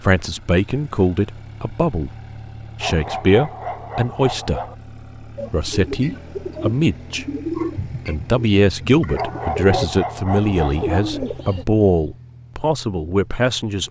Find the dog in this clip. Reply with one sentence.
The dog can be heard from 2.8 to 4.8 s and from 9.2 to 11.1 s.